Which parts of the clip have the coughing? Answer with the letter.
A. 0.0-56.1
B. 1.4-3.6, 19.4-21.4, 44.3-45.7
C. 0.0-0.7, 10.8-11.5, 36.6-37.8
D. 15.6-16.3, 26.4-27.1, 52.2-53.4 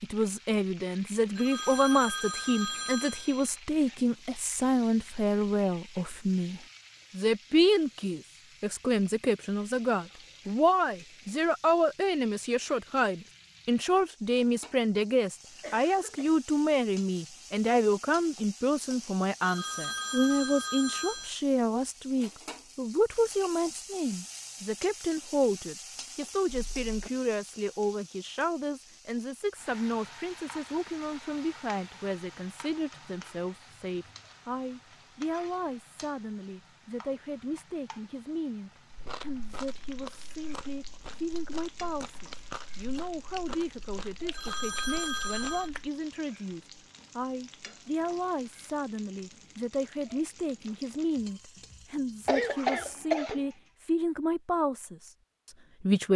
D.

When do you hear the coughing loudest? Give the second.
53 s.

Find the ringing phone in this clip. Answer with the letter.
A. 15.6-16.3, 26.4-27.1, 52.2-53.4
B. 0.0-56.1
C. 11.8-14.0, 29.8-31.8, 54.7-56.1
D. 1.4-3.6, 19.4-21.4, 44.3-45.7
D.